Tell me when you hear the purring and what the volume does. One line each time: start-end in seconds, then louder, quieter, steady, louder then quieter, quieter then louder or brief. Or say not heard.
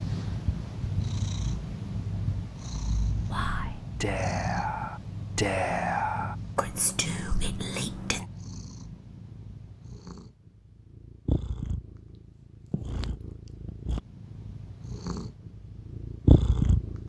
0.0-17.0 quieter then louder.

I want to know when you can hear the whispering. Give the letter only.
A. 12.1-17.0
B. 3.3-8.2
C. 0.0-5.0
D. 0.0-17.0
B.